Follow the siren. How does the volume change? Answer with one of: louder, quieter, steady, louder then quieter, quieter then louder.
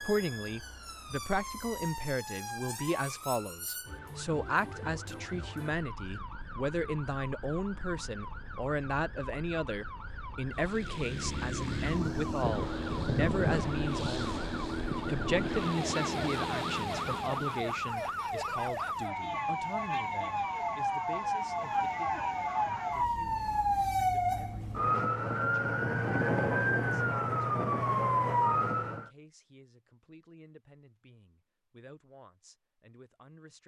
louder.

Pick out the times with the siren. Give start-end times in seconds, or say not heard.
0.0-29.1.